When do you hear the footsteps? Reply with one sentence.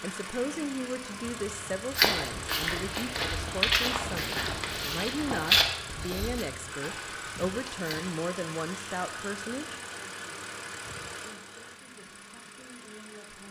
You can hear the footsteps from 1.9 to 8.2 s.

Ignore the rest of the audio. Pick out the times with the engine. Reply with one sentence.
You can hear the engine from 0.0 to 13.4 s.